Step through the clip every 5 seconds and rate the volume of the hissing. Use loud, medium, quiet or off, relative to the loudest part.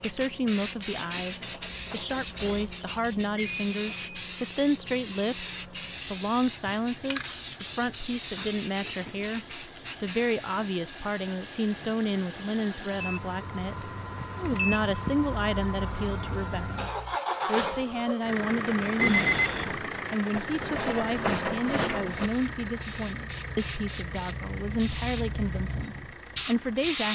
loud, loud, quiet, quiet, medium, loud.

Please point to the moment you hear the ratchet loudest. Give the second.
21 s.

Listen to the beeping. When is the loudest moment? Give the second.
19 s.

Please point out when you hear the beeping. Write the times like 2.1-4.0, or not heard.
3.4-4.0, 12.9-15.2, 19.0-19.8.